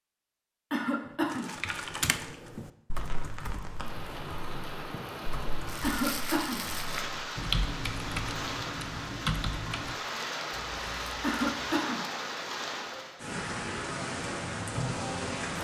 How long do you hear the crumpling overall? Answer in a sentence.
You can hear the crumpling for 4 seconds altogether.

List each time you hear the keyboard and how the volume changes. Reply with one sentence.
You can hear the keyboard from 1.0 to 9.9 s, getting quieter then louder.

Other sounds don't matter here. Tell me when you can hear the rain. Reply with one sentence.
You can hear the rain from 2.9 to 15.5 s.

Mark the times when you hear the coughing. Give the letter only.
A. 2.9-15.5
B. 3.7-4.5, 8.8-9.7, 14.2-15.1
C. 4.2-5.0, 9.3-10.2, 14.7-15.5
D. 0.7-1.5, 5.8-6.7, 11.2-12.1
D.